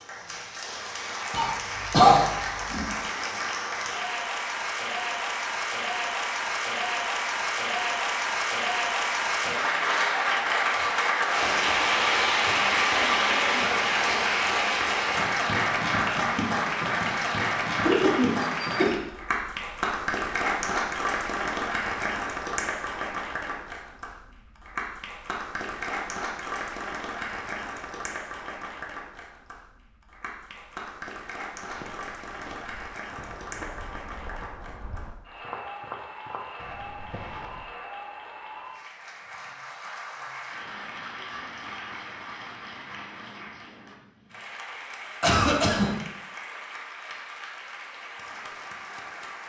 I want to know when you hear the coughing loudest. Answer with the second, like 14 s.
2 s.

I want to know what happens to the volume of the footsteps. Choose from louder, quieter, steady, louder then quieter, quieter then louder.
louder then quieter.